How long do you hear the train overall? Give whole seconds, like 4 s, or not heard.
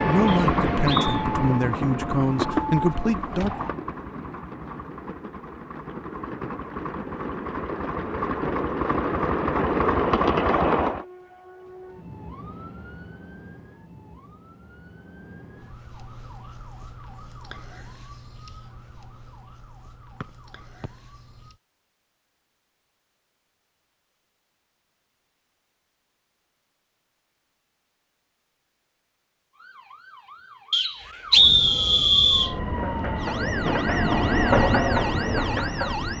15 s.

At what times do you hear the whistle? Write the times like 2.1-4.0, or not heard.
0.2-1.1, 20.2-20.9, 30.7-32.5.